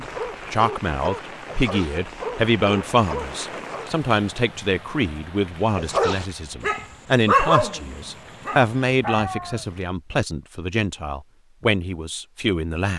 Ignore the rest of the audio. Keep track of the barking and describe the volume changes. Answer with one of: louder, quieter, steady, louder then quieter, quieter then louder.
louder then quieter.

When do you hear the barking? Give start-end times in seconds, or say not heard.
0.0-3.9, 5.8-9.7.